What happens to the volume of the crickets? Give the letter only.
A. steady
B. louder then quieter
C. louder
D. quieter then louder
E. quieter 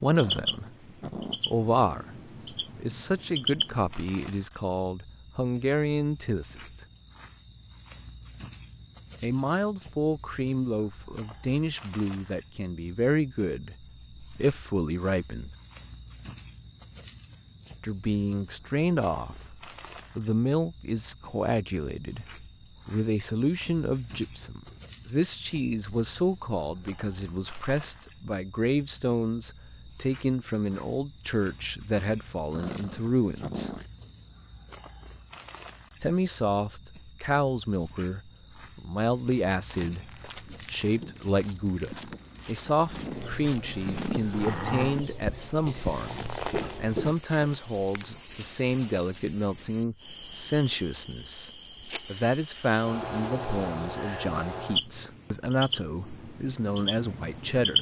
A.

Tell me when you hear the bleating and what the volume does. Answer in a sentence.
The bleating can't be heard in this clip.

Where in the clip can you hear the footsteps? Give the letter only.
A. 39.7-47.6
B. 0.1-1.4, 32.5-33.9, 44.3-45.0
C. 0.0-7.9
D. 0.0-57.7
A.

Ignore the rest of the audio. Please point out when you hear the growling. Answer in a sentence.
The growling can be heard from 0.1 to 1.4 s, from 32.5 to 33.9 s and from 44.3 to 45.0 s.